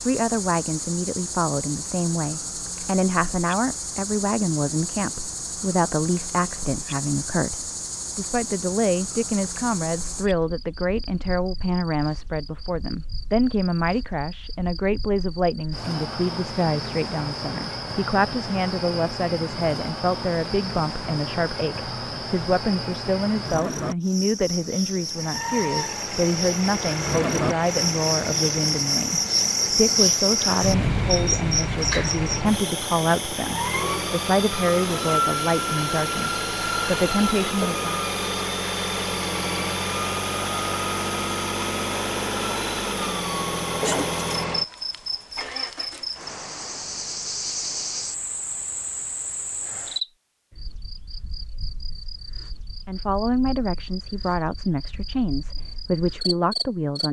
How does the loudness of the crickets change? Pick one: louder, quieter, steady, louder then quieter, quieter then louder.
louder then quieter.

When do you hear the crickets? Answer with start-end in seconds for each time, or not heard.
0.0-57.0.